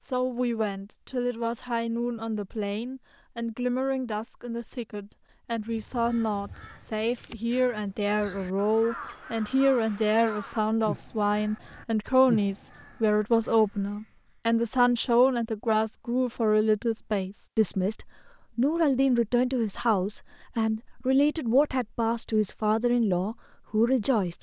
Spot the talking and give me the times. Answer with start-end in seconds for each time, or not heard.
0.0-24.3.